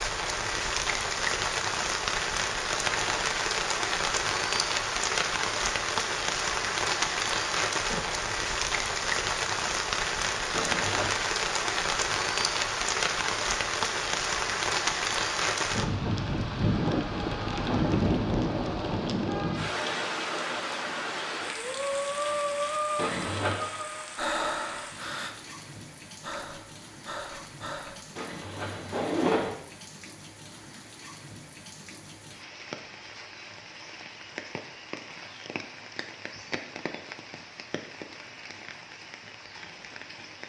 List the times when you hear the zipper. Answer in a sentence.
The zipper can be heard from 10.5 to 11.2 s, from 22.9 to 23.6 s and from 28.1 to 29.5 s.